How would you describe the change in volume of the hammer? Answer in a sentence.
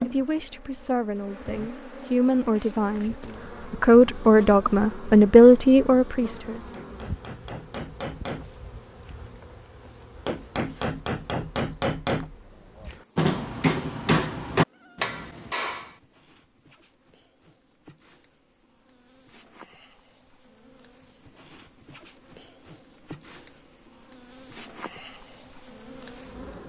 The volume of the hammer goes up.